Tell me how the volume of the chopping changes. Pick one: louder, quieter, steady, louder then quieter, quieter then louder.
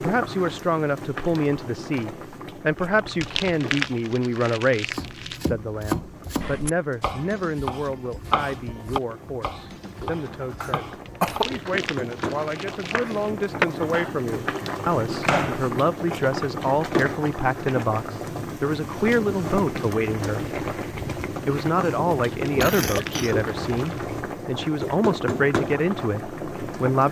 quieter then louder.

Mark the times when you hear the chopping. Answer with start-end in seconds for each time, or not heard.
4.9-15.8.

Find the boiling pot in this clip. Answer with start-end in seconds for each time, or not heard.
0.0-27.0.